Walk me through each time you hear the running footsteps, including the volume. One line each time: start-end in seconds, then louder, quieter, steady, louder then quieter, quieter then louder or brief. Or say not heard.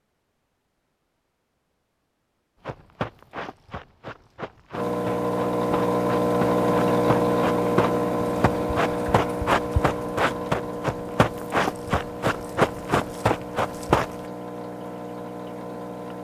2.6-14.2 louder.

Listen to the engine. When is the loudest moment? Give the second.
7 s.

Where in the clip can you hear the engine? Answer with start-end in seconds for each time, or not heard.
4.7-16.1.